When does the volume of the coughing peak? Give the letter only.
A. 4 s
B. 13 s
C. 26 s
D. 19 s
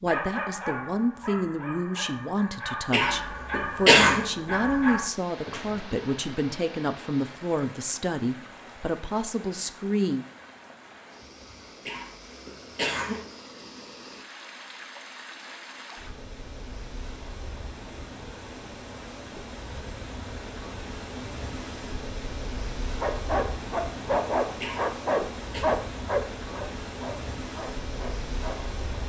A.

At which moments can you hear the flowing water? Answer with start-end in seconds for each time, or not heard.
5.0-29.0.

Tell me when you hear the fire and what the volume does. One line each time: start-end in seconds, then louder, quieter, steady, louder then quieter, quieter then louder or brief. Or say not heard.
not heard.